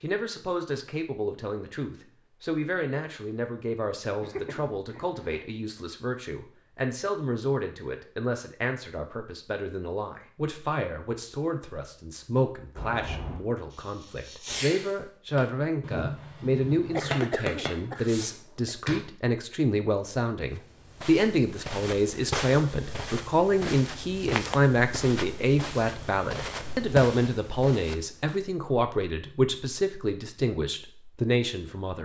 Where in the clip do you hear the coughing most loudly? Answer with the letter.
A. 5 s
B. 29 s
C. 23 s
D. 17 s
D.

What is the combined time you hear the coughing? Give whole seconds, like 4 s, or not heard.
3 s.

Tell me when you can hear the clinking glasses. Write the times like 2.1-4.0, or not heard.
not heard.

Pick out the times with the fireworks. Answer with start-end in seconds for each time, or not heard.
12.8-19.0.